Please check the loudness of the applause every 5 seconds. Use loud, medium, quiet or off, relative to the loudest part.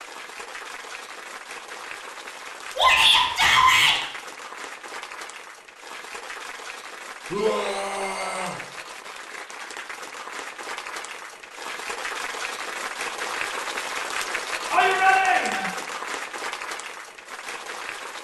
medium, medium, loud, loud.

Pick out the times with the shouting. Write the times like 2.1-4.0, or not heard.
2.8-4.0, 7.3-8.6, 14.7-15.7.